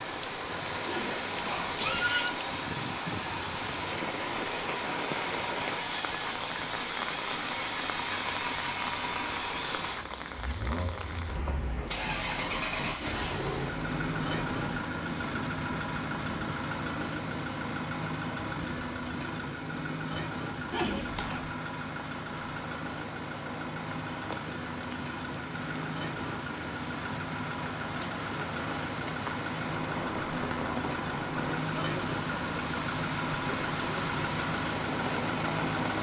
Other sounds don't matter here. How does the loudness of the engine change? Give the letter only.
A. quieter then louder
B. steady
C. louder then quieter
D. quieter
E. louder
B.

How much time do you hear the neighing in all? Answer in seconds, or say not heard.
2 s.